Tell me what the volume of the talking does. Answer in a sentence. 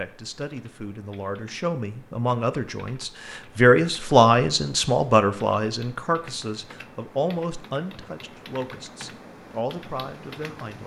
The volume of the talking goes up, then down.